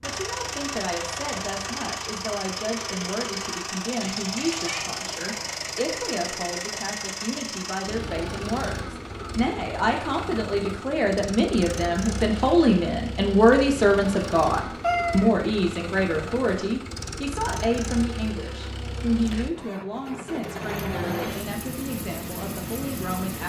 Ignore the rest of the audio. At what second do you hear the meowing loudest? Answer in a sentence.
The loudest moment of the meowing is at 15 seconds.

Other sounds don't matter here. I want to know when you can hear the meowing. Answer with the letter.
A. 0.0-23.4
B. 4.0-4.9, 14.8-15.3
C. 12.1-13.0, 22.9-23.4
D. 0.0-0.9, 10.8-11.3
B.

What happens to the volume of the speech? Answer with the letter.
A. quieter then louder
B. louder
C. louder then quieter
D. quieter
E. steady
C.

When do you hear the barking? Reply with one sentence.
The barking can't be heard in this clip.